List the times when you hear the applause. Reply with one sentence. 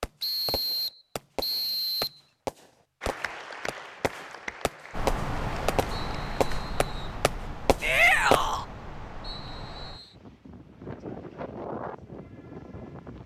You can hear the applause from 3.0 to 6.7 s.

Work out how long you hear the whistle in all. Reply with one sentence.
The whistle can be heard for 4 seconds in total.